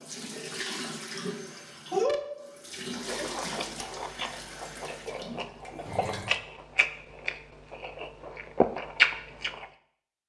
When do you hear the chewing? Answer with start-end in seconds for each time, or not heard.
3.0-9.7.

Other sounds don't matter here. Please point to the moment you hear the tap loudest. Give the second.
2 s.